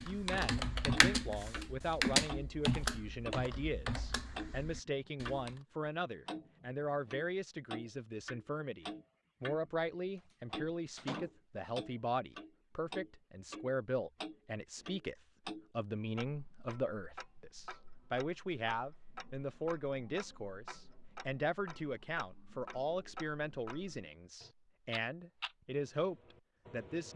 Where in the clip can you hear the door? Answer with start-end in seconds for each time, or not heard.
10.3-11.3.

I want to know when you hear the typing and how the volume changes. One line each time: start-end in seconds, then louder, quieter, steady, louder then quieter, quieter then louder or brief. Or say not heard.
0.0-5.5 quieter.